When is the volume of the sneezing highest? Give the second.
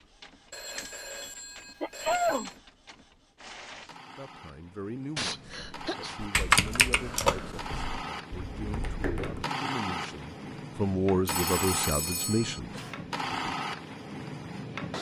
2 s.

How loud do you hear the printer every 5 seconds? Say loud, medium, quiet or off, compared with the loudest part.
quiet, loud, loud.